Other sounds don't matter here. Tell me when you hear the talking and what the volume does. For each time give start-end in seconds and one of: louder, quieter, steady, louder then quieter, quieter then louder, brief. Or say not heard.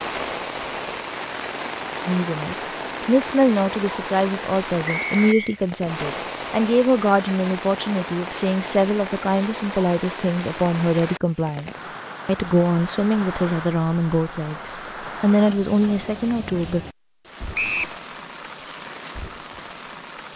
2.0-16.9 steady.